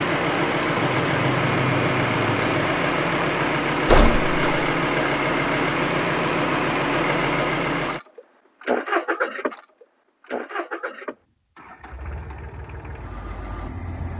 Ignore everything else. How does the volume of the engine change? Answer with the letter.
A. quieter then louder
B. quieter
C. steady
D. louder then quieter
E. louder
B.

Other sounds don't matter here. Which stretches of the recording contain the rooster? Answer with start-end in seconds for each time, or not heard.
0.8-2.8.